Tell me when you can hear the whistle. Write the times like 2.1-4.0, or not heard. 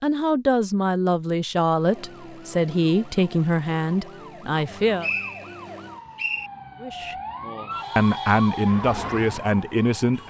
5.0-6.5.